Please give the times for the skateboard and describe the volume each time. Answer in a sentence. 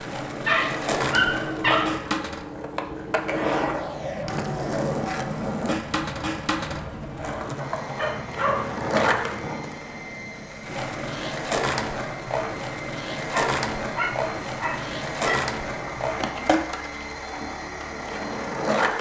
The skateboard can be heard from 0.0 to 18.9 s, at a steady volume.